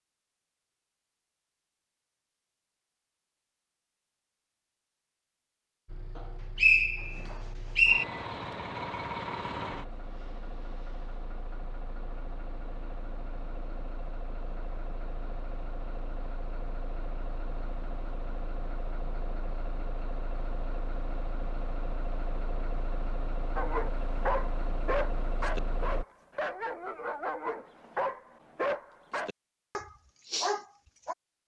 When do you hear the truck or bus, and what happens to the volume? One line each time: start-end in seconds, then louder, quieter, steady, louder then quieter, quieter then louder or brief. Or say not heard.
5.8-26.1 quieter then louder.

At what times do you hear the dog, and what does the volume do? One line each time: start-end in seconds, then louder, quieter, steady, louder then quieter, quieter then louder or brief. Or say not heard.
23.6-31.1 steady.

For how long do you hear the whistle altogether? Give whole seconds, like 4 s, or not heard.
2 s.